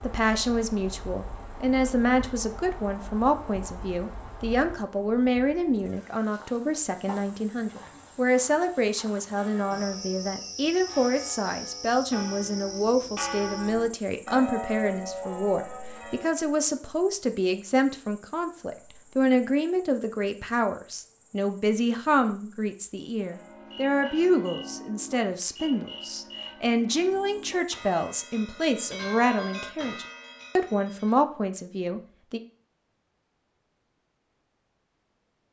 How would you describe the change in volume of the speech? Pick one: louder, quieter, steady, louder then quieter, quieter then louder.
steady.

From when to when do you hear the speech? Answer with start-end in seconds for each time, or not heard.
0.0-32.4.